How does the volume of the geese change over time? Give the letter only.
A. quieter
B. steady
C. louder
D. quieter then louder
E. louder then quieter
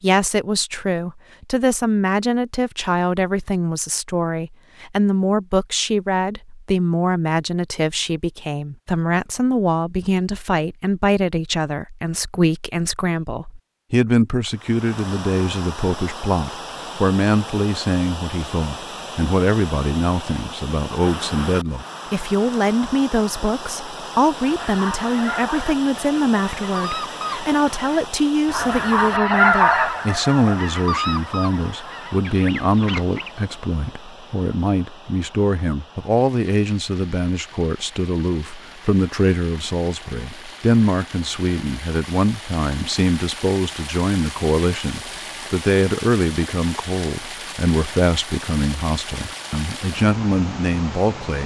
E.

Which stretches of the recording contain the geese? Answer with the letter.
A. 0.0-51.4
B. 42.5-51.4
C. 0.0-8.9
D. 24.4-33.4
D.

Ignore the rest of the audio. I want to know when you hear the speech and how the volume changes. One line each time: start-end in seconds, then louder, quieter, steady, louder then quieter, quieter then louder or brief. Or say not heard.
0.0-51.4 steady.